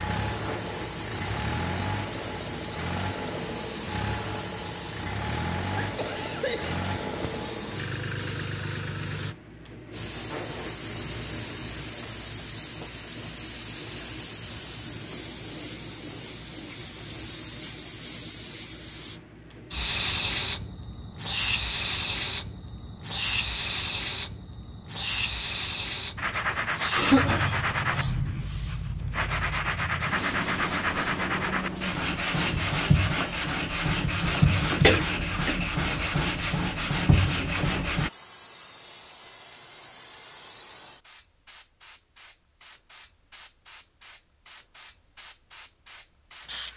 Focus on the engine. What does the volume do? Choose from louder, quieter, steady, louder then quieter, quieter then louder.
steady.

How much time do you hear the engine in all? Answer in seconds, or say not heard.
9 s.